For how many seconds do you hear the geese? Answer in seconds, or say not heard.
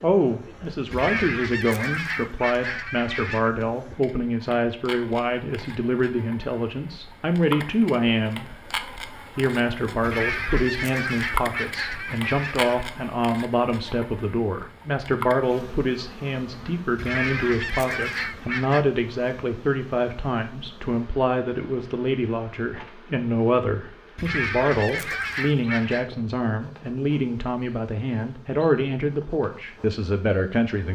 9 s.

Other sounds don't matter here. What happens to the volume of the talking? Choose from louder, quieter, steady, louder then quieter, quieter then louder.
steady.